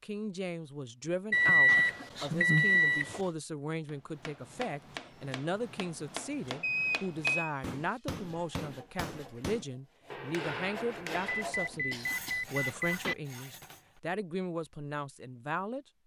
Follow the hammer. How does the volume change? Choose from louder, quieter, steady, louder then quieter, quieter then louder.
louder.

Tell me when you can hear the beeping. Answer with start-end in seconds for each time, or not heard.
1.3-3.2, 6.6-7.5, 11.3-13.2.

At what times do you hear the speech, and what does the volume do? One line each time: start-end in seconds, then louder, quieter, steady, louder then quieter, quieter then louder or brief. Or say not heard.
0.0-15.8 steady.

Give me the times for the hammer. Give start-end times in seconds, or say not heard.
3.9-11.6.